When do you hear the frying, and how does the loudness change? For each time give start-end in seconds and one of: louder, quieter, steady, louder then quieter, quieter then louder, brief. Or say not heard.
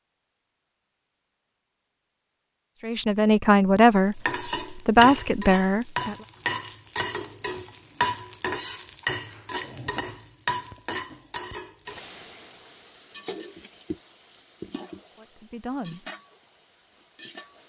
4.1-17.6 quieter.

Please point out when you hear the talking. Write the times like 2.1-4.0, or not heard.
2.8-6.2, 15.2-16.1.